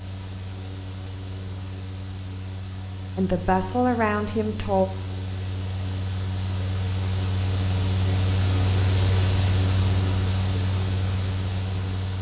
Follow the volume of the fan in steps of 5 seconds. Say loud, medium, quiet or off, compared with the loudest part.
medium, loud, loud.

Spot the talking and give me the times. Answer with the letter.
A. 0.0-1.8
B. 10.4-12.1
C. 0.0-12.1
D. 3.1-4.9
D.